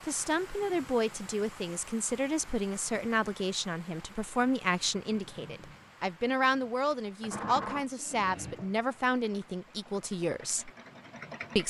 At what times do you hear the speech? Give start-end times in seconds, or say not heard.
0.0-10.7.